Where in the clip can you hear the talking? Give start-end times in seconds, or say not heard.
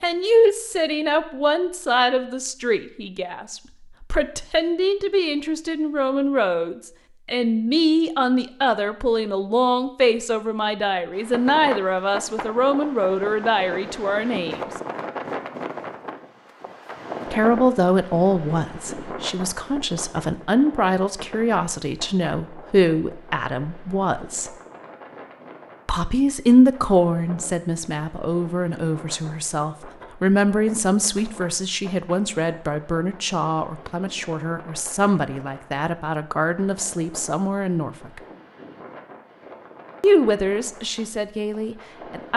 0.0-14.7, 17.3-24.5, 25.9-38.2, 40.0-42.3.